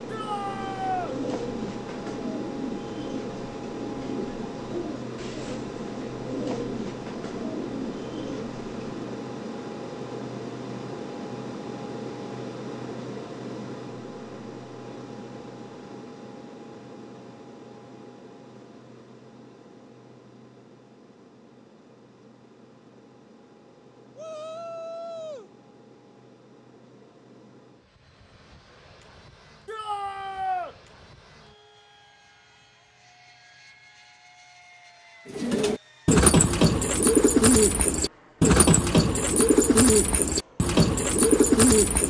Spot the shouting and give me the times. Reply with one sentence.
The shouting can be heard from 0.1 to 1.1 s, from 24.1 to 25.5 s and from 29.6 to 30.8 s.